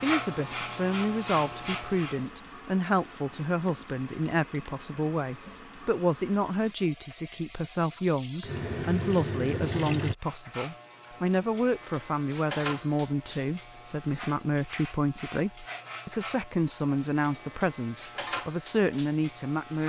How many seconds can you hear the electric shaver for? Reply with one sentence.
The electric shaver can be heard for 12 seconds in total.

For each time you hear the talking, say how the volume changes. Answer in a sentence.
The talking can be heard from 0.0 to 19.8 s, at a steady volume.